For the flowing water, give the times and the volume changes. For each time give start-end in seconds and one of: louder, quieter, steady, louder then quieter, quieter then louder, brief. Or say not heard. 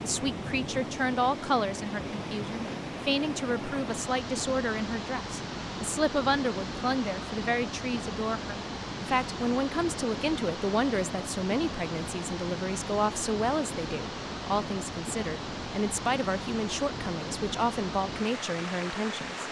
0.0-19.4 steady.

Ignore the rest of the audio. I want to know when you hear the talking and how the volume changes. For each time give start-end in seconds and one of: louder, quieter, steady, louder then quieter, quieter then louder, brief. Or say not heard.
0.0-19.4 steady.